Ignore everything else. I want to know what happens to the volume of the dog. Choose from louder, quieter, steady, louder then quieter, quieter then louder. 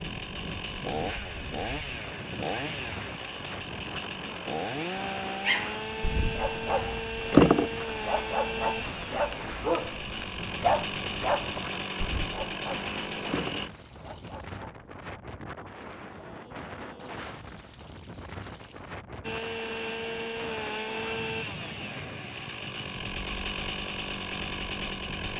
quieter.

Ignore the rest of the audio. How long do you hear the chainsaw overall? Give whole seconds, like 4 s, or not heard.
20 s.